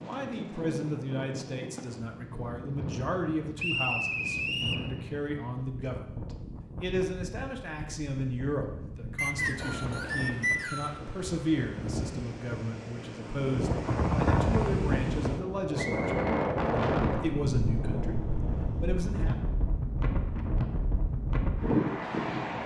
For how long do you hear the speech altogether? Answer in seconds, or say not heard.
18 s.